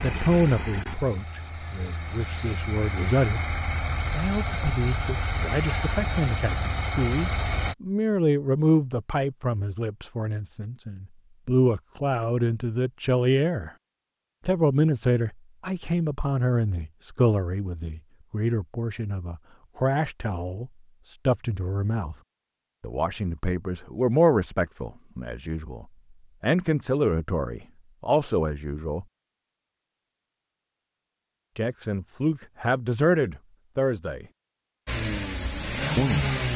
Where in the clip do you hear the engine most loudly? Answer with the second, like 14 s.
36 s.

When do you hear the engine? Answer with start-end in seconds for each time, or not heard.
0.0-7.8, 34.9-36.5.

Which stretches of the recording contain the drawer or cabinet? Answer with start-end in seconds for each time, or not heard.
not heard.